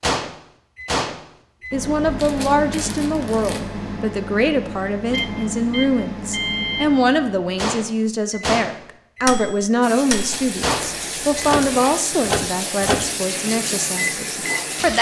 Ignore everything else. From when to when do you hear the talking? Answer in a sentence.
The talking can be heard from 1.7 to 14.9 s.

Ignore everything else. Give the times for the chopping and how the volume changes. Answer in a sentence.
The chopping can't be heard in this clip.